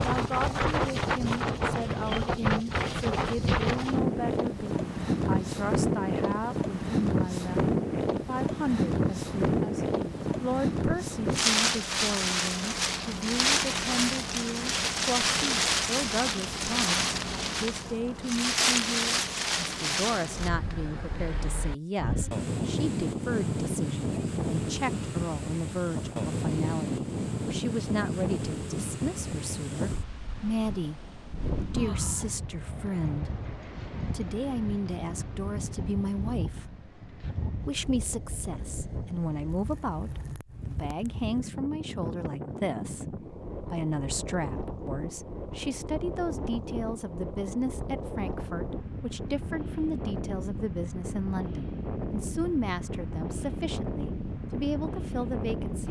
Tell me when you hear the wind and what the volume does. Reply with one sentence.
You can hear the wind from 0.0 to 55.8 s, getting quieter.